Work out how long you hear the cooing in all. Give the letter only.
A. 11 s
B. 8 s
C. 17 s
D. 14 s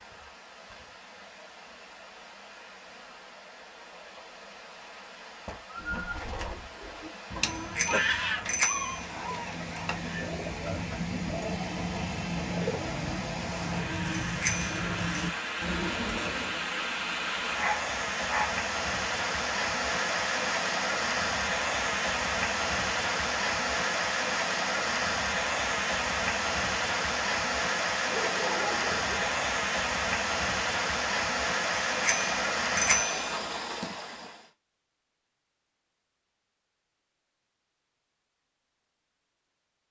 A.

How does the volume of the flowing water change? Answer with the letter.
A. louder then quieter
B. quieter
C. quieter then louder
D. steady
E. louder
E.